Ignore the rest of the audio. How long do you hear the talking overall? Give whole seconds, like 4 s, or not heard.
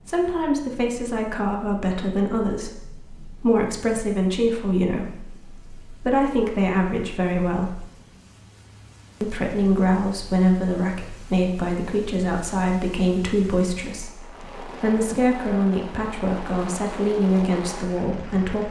17 s.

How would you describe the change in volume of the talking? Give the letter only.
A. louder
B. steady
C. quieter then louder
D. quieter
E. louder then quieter
B.